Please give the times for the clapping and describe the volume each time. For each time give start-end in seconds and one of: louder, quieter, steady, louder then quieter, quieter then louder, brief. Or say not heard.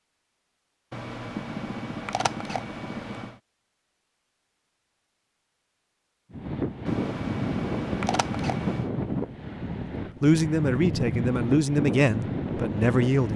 not heard.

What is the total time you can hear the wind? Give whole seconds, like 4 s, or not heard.
7 s.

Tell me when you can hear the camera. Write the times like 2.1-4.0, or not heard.
0.9-3.4, 6.8-8.9.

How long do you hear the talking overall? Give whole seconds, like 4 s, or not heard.
3 s.